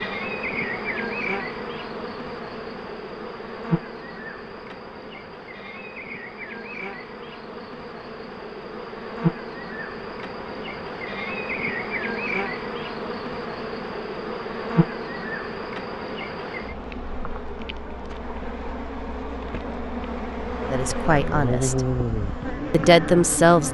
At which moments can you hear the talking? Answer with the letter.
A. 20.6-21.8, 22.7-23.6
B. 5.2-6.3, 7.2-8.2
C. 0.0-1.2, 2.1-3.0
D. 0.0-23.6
A.